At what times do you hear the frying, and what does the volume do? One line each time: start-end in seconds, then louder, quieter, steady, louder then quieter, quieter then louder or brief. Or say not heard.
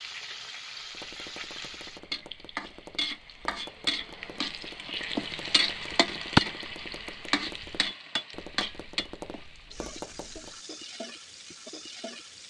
0.0-12.4 louder then quieter.